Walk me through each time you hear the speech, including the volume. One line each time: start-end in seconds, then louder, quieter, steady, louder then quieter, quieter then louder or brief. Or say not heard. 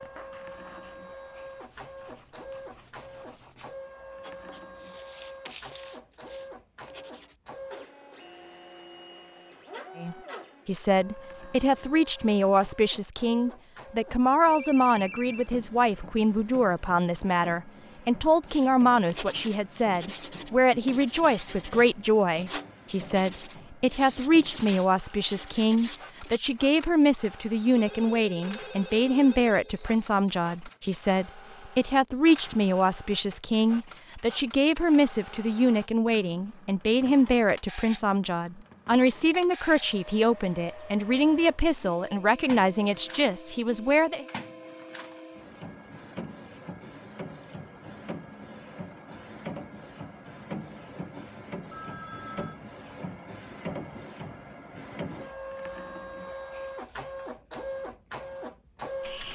9.9-44.2 steady.